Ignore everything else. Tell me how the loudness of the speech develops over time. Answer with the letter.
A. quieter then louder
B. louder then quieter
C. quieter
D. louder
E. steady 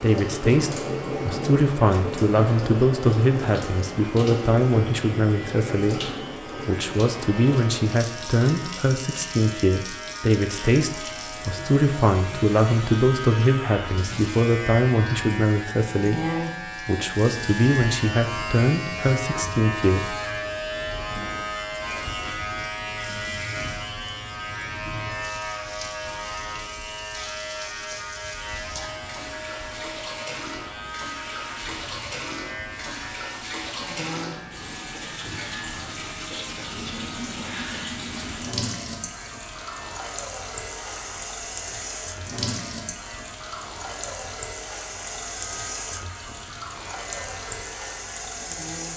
E.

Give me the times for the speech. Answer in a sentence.
You can hear the speech from 0.0 to 20.2 s.